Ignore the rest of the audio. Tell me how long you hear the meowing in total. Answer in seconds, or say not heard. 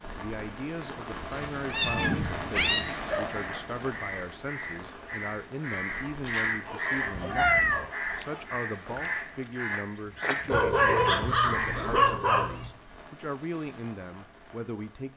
4 s.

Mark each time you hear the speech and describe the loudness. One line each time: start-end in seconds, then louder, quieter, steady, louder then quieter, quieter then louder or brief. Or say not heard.
0.1-15.1 steady.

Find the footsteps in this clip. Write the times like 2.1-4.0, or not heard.
not heard.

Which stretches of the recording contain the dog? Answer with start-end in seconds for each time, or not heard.
1.8-3.3, 6.5-8.4, 10.4-12.5.